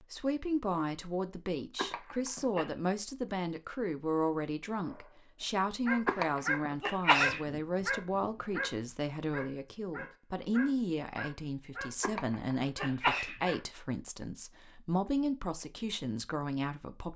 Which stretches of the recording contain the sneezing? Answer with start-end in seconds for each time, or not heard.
1.8-2.7, 6.0-7.5, 12.0-13.4.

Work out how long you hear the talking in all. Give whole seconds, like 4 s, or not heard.
17 s.